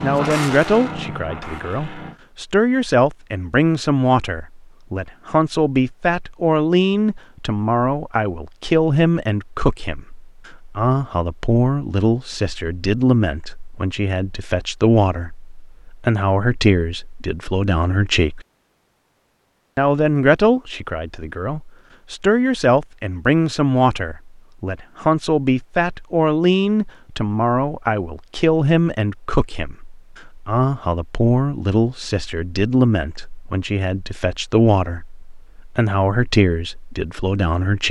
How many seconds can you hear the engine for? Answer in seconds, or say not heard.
2 s.